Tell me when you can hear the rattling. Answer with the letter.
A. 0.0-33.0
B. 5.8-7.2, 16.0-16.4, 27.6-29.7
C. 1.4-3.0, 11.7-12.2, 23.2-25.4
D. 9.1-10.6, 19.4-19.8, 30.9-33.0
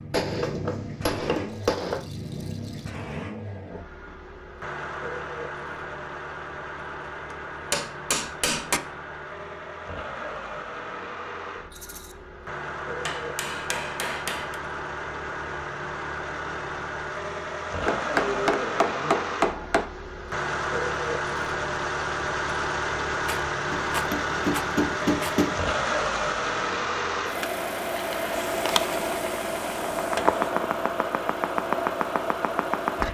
C.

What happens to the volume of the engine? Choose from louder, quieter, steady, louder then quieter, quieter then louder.
louder.